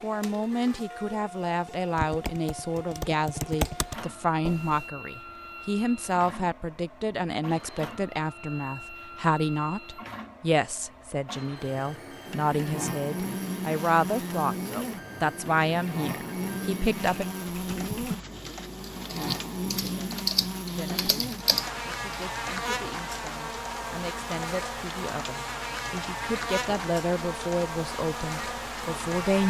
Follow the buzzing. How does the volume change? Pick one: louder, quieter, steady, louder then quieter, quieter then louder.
steady.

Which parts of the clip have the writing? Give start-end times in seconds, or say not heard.
not heard.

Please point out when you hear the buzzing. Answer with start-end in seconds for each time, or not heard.
12.2-29.4.